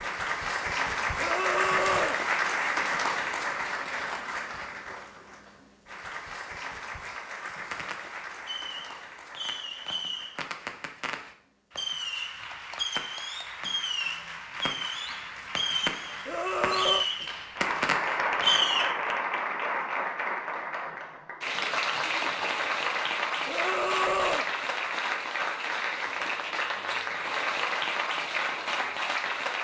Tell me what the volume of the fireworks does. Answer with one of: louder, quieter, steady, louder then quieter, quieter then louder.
louder.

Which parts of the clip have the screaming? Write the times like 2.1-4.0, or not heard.
1.1-2.2, 16.2-17.1, 23.4-24.5.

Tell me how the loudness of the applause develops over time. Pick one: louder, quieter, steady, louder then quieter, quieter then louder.
quieter then louder.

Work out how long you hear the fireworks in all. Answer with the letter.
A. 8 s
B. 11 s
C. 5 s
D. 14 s
B.